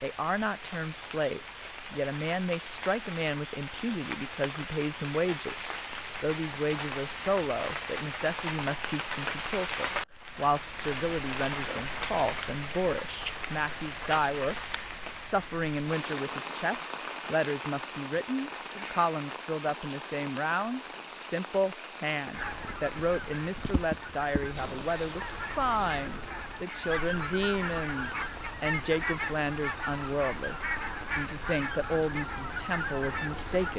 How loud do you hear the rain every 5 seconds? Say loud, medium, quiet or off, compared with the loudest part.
medium, loud, loud, loud, medium, medium, medium.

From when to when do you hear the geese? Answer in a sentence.
The geese can be heard from 22.3 to 33.7 s.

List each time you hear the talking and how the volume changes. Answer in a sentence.
The talking can be heard from 0.0 to 33.7 s, at a steady volume.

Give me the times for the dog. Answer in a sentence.
The dog can't be heard in this clip.